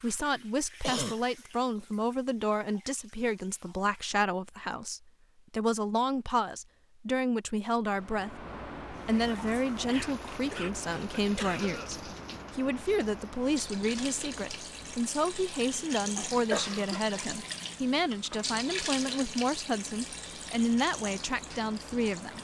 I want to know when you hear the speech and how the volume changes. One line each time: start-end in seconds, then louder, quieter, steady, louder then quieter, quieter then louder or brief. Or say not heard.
0.0-22.3 steady.